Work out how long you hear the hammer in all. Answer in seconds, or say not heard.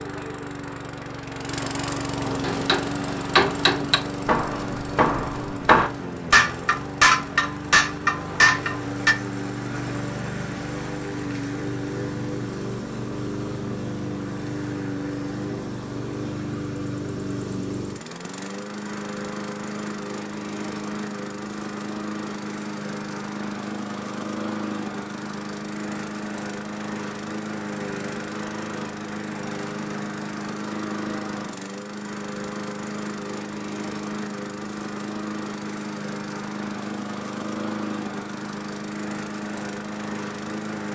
7 s.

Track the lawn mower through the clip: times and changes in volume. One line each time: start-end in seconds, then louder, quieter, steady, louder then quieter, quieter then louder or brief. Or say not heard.
0.0-40.9 steady.